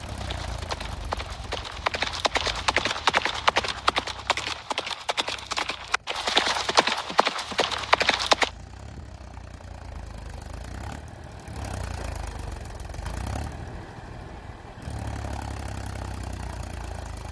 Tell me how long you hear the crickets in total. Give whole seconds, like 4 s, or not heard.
not heard.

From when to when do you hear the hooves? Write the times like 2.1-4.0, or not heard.
0.0-8.5.